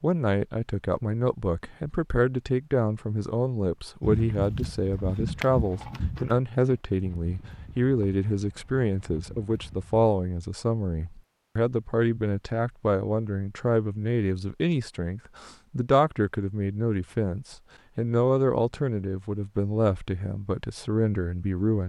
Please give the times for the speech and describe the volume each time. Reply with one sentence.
You can hear the speech from 0.0 to 21.8 s, at a steady volume.